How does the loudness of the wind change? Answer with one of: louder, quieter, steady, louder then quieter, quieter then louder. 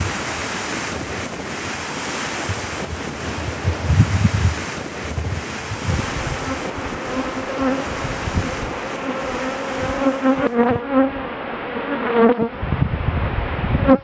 quieter.